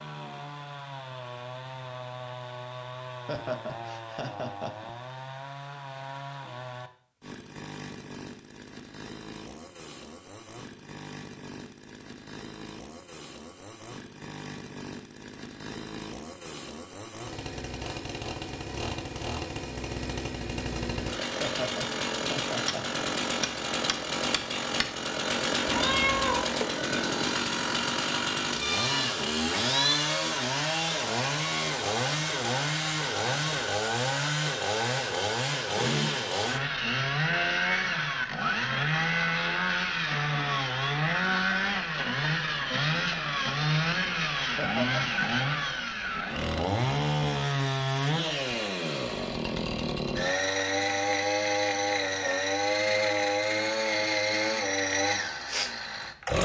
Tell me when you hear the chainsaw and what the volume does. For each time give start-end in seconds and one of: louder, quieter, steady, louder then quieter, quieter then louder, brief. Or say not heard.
0.0-56.4 louder.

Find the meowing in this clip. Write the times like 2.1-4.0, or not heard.
25.6-26.5, 28.6-30.3.